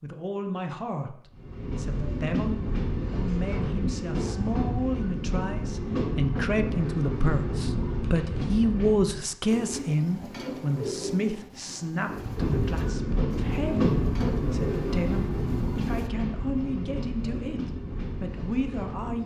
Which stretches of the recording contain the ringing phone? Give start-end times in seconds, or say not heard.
not heard.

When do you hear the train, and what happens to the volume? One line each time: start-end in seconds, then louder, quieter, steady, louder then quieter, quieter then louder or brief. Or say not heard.
1.3-9.3 steady
12.1-19.2 quieter.